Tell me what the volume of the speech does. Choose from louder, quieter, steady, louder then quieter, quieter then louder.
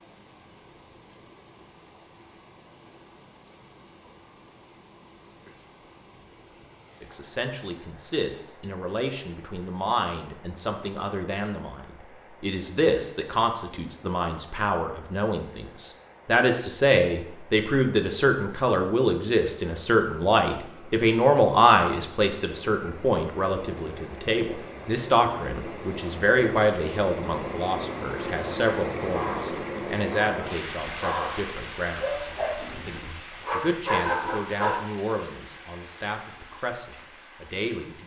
louder then quieter.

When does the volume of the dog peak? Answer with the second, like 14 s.
34 s.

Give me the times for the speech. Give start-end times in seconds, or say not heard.
7.0-38.0.